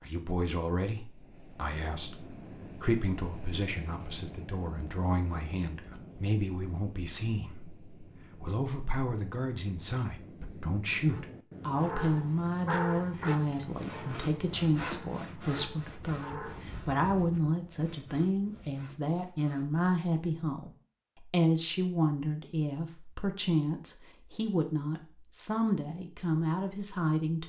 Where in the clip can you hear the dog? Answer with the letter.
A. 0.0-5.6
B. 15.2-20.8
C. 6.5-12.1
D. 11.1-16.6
D.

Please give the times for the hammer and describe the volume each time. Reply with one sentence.
The hammer can't be heard in this clip.